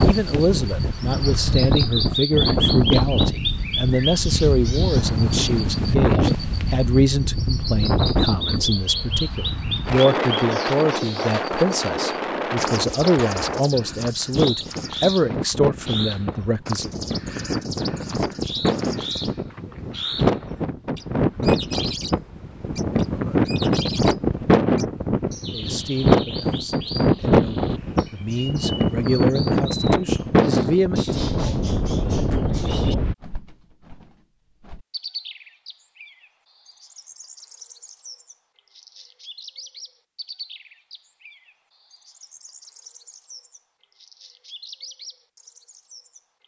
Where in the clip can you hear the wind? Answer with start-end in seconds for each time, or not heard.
0.0-33.1.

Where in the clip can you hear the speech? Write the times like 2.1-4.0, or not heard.
0.0-16.9, 25.5-31.2.